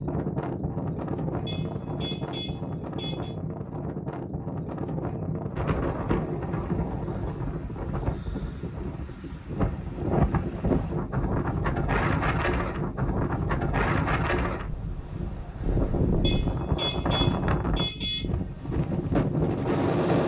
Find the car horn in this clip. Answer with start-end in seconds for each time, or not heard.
1.4-3.4, 16.2-18.2.